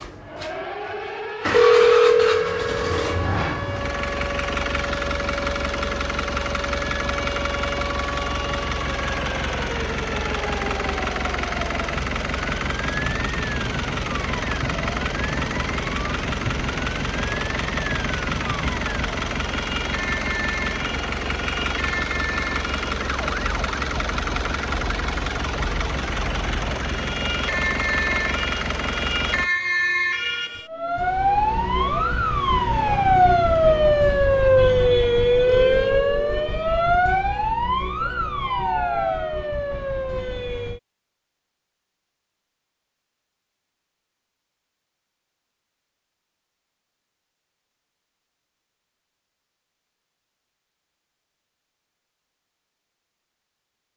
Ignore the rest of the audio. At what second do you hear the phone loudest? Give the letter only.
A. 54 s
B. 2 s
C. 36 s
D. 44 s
B.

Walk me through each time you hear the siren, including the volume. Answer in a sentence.
The siren can be heard from 0.0 to 40.8 s, getting louder.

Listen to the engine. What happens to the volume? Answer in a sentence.
The loudness of the engine stays about the same.